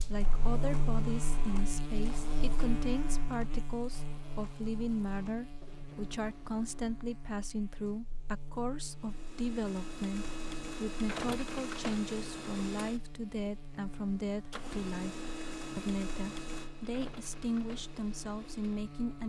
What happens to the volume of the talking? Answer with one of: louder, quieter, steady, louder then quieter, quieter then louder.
steady.